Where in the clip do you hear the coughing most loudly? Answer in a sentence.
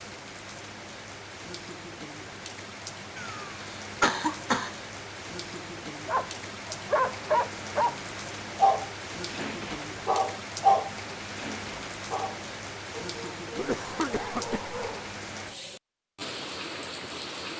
The volume of the coughing peaks at 4 seconds.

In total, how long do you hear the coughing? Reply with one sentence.
You can hear the coughing for 3 seconds altogether.